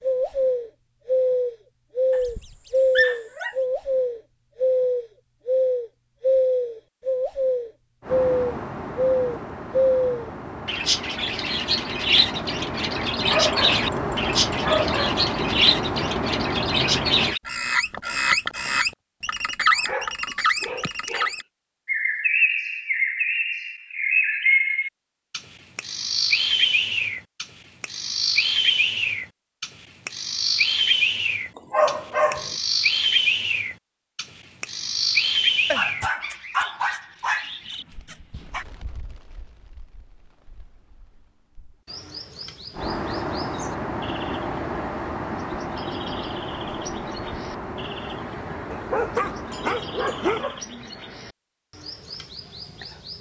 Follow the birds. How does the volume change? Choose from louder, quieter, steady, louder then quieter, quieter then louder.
quieter.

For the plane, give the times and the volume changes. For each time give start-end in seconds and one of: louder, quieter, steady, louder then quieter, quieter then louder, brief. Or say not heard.
8.0-17.4 louder
42.7-50.5 quieter.